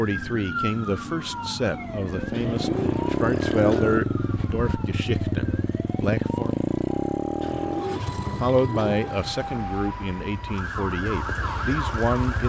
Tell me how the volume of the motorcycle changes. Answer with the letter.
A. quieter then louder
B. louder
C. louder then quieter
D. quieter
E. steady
D.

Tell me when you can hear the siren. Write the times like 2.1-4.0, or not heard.
0.0-12.4.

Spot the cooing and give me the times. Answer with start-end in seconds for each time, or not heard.
2.3-4.0, 7.4-9.3.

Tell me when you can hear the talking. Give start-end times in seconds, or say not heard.
0.0-6.5, 8.4-12.4.